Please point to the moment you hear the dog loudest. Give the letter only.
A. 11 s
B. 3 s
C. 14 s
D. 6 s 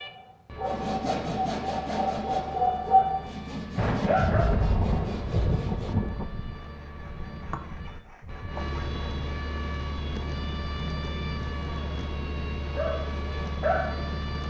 B.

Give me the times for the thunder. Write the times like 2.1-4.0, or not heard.
3.8-6.3.